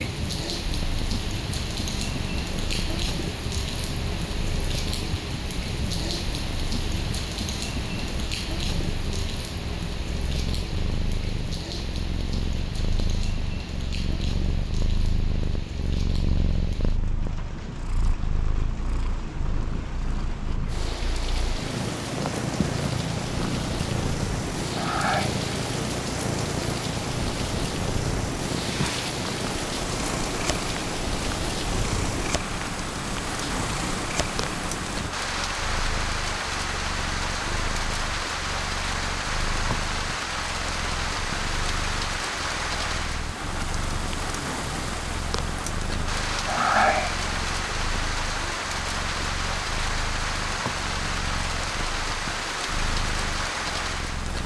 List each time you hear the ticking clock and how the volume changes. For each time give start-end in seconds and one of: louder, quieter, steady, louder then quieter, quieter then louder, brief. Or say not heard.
not heard.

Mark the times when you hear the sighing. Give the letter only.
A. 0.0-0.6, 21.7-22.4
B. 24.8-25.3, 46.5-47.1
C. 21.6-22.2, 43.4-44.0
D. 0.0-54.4
B.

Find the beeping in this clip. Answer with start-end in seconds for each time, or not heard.
not heard.